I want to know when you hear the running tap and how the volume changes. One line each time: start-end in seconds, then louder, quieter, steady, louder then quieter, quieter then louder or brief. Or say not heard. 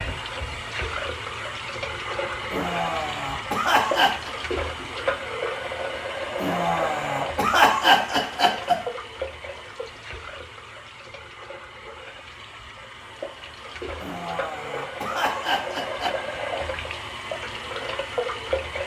0.0-18.8 quieter then louder.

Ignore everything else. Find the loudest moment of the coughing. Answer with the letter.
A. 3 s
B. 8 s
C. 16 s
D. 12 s
B.